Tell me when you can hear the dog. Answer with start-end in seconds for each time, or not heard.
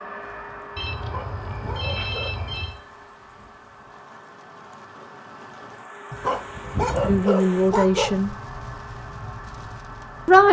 0.9-2.5, 6.1-8.3.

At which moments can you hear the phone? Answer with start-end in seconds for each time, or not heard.
0.8-2.8.